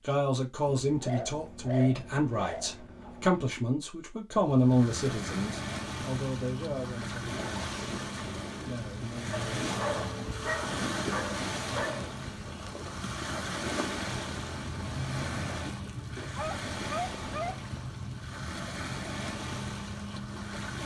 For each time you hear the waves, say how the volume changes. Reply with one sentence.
You can hear the waves from 4.3 to 20.8 s, at a steady volume.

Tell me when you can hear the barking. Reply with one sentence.
The barking can be heard from 0.7 to 3.4 s, from 9.3 to 12.1 s and from 16.4 to 17.6 s.